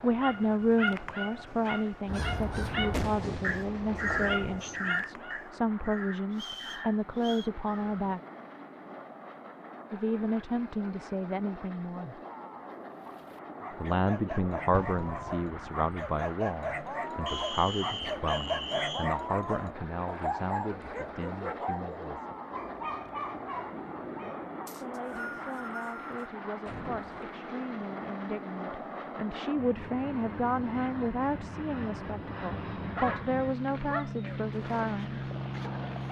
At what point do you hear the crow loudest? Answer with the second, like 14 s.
4 s.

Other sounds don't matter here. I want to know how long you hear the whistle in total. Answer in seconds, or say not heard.
5 s.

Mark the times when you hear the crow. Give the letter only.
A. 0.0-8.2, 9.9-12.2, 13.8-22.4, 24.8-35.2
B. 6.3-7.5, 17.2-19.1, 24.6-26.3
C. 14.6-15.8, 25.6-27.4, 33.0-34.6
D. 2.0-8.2
D.